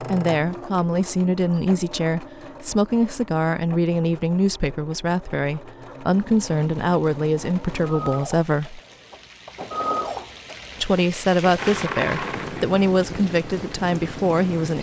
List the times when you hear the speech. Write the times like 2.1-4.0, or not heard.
0.0-8.8, 10.8-14.7.